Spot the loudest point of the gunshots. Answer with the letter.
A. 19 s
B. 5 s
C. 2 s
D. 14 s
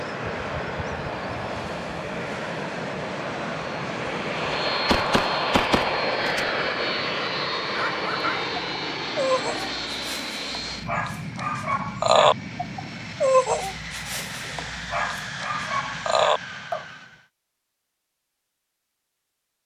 B.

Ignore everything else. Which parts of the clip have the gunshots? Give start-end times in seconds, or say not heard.
4.8-6.5.